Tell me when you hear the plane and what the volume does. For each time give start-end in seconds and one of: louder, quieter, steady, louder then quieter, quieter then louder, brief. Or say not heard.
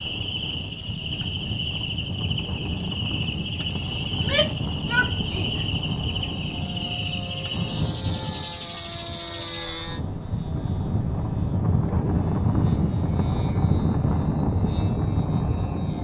0.0-15.9 louder.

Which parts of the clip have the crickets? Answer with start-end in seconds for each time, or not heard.
0.0-15.9.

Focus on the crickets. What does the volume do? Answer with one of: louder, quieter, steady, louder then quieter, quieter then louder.
quieter.